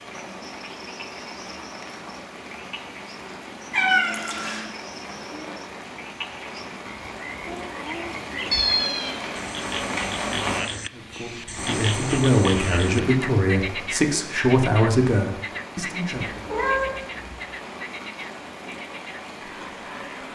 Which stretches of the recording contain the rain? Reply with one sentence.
The rain can be heard from 0.0 to 20.3 s.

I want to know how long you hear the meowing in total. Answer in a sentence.
The meowing can be heard for 3 seconds in total.